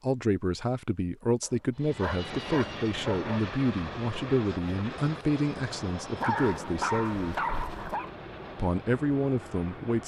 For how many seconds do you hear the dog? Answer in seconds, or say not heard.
4 s.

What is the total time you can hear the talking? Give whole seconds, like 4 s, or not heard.
9 s.